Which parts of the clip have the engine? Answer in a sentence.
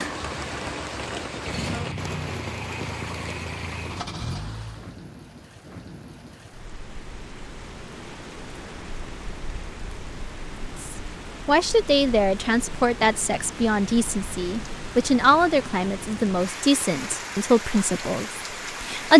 You can hear the engine from 0.0 to 5.0 s.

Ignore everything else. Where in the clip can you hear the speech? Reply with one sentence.
You can hear the speech from 10.8 to 19.1 s.